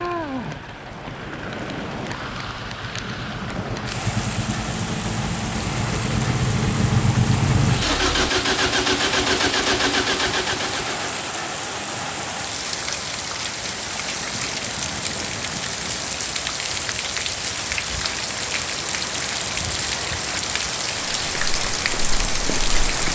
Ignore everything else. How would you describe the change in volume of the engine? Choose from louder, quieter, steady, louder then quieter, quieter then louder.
louder.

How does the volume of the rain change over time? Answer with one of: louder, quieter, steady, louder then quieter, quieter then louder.
louder.